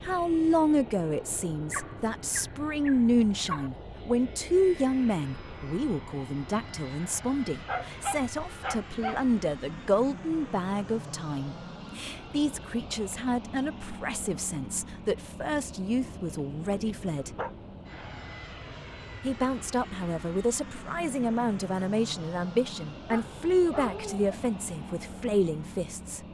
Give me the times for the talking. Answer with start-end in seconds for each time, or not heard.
0.0-17.3, 19.2-26.2.